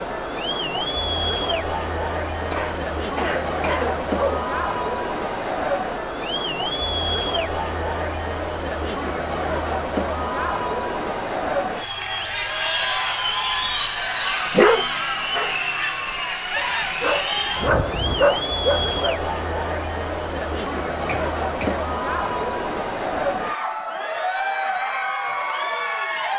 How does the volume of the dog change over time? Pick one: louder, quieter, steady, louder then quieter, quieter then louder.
quieter then louder.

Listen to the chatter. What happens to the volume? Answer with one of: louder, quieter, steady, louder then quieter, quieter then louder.
steady.